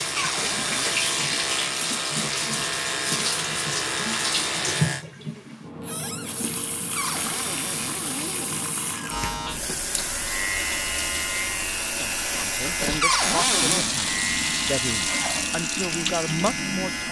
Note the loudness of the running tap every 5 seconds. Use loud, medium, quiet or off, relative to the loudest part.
loud, medium, loud, loud.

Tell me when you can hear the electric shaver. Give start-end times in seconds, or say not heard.
0.0-5.0, 9.1-17.0.